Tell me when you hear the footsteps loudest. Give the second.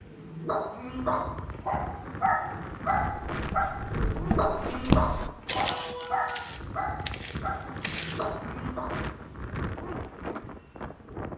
5 s.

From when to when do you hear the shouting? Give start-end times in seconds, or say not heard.
5.5-6.5.